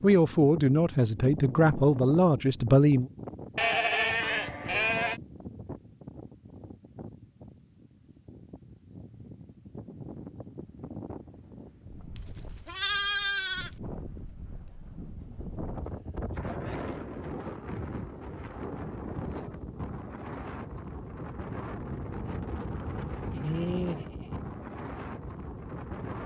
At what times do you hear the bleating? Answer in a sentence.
You can hear the bleating from 3.5 to 5.2 s, from 12.2 to 13.7 s and from 23.3 to 24.4 s.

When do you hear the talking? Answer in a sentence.
The talking can be heard from 0.0 to 3.1 s.